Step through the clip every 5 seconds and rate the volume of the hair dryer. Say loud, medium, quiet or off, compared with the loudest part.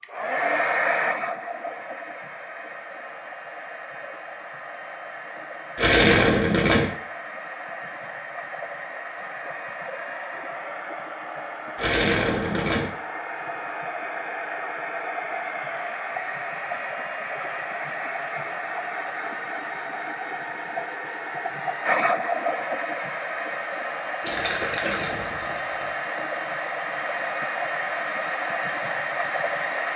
loud, medium, medium, loud, loud, loud.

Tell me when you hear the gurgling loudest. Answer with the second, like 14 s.
6 s.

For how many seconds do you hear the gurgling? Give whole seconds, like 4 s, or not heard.
4 s.